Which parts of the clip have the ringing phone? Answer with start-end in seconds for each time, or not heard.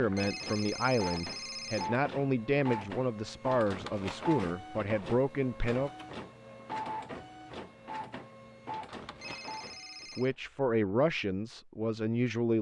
0.1-1.9, 9.2-10.3.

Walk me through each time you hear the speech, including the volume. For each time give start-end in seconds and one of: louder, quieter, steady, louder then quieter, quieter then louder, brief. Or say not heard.
0.0-5.9 steady
10.2-12.5 brief.